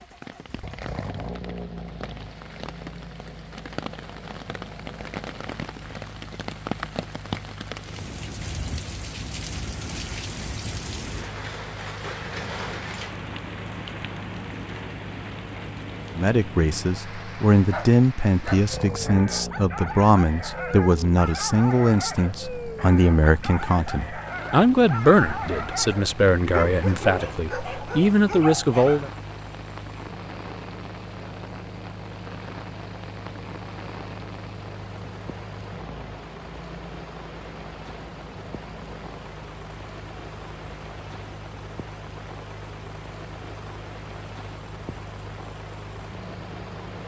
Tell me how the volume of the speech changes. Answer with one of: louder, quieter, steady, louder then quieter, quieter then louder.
steady.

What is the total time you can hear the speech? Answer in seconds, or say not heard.
13 s.